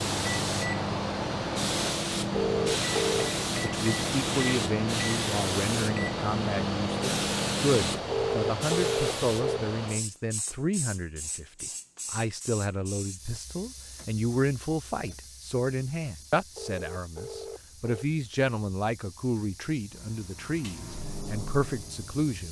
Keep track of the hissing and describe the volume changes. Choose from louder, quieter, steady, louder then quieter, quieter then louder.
quieter.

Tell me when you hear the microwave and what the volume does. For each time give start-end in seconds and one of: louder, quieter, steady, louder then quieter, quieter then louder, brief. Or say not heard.
0.0-8.1 steady
19.9-22.4 brief.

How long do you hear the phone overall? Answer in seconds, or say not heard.
4 s.